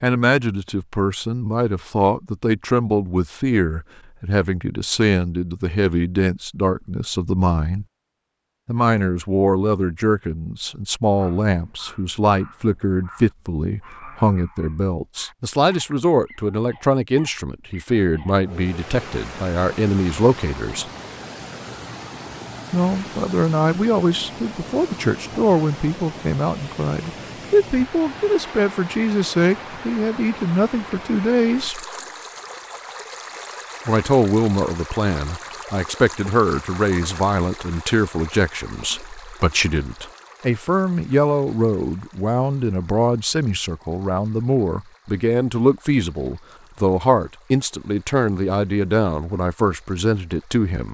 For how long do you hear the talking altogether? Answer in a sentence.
You can hear the talking for 46 seconds altogether.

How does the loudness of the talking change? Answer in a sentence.
The volume of the talking stays about the same.